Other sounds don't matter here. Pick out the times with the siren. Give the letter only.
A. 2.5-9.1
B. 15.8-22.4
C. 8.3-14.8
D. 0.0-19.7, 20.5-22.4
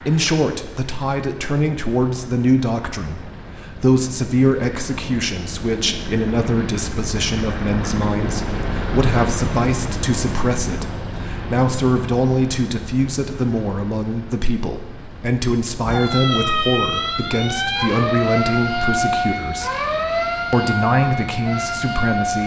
B.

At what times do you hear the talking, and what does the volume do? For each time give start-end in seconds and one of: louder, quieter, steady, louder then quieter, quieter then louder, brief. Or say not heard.
0.0-19.7 steady
20.5-22.4 brief.